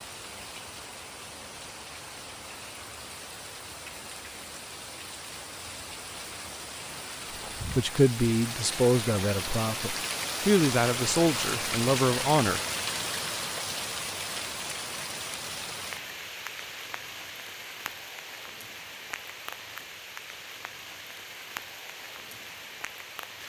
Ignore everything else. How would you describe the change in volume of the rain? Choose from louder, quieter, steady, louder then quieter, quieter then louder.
louder then quieter.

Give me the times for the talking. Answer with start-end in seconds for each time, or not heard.
7.6-12.6.